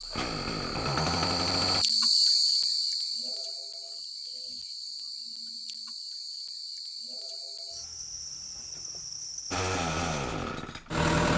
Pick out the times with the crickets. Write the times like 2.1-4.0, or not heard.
0.0-9.7.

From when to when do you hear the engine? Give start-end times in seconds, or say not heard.
0.0-1.9, 9.5-11.3.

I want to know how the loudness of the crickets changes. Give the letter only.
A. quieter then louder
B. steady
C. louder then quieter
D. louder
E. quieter
E.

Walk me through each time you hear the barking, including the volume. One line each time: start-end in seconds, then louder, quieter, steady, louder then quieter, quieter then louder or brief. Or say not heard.
not heard.